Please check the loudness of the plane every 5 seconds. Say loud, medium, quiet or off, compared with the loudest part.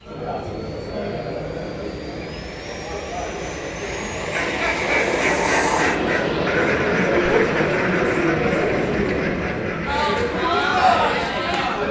medium, loud, medium.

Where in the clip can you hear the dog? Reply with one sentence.
The dog can't be heard in this clip.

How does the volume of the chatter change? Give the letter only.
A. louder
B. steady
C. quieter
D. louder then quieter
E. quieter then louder
A.